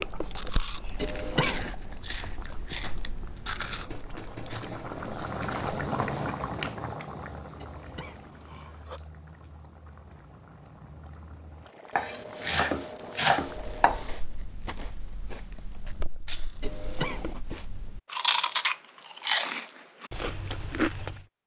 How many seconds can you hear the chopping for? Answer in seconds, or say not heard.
2 s.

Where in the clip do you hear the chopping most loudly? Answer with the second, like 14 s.
13 s.